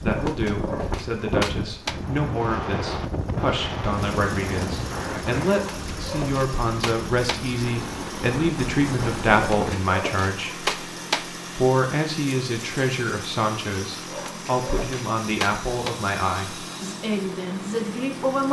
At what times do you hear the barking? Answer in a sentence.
The barking can be heard from 0.1 to 1.9 s, from 5.5 to 7.5 s, from 9.3 to 11.2 s and from 14.1 to 15.9 s.